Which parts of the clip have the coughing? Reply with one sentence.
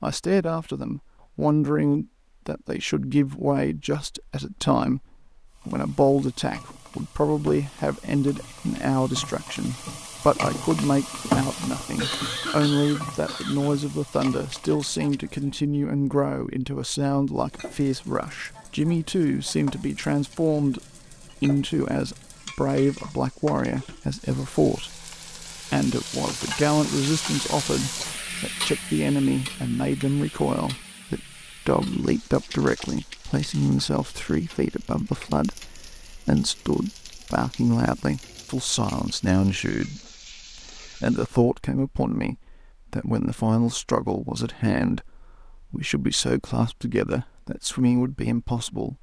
You can hear the coughing from 11.9 to 13.8 s.